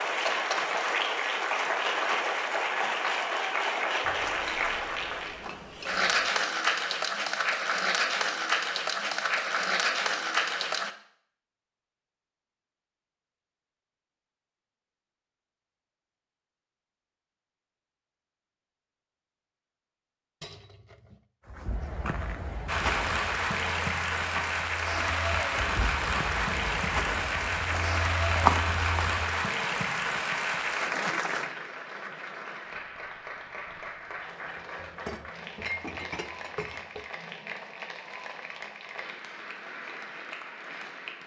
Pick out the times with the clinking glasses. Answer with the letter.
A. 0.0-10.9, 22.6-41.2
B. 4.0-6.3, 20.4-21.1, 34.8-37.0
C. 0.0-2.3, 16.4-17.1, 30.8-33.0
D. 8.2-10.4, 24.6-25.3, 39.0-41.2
B.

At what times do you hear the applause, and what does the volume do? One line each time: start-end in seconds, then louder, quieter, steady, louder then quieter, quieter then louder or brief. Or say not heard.
0.0-10.9 steady
22.6-41.2 quieter.